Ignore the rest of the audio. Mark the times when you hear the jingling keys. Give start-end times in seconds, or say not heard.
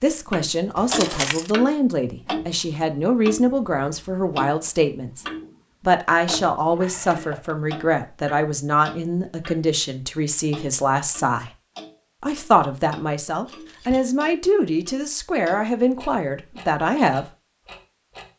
0.8-1.5, 6.3-7.5, 13.4-14.1.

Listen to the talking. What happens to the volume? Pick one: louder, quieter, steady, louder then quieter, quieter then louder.
steady.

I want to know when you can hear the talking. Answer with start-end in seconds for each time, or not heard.
0.0-11.5, 12.2-17.2.